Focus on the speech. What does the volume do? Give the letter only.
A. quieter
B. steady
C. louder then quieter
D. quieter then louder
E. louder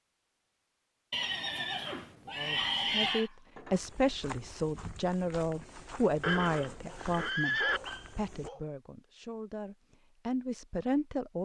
D.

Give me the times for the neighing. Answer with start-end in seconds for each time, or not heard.
1.1-3.3, 6.2-7.8.